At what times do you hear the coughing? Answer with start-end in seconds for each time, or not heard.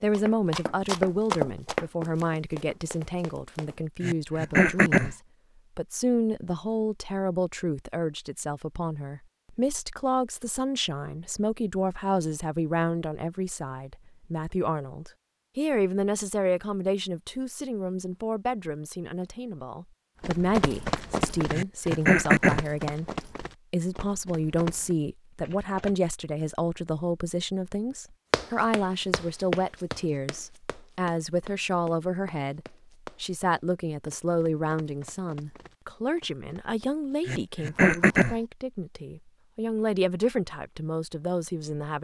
4.0-5.2, 21.5-22.6, 37.2-38.4.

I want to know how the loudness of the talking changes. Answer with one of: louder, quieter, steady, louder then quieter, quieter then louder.
steady.